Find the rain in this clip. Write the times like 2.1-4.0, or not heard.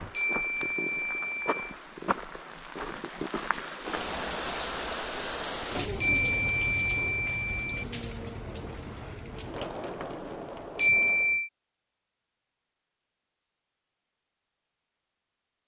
0.0-11.4.